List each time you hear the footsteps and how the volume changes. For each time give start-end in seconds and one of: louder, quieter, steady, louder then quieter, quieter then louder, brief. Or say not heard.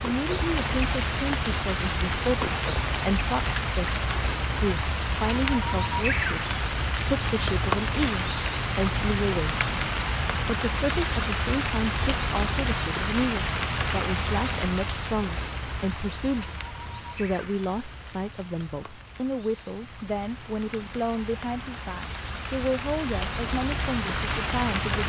not heard.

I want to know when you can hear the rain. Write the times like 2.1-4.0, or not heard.
0.0-25.0.